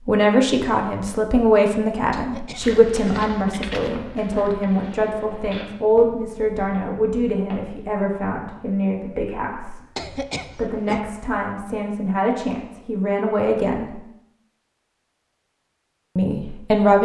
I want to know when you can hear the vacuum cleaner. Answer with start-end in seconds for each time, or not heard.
not heard.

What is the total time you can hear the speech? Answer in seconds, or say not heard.
15 s.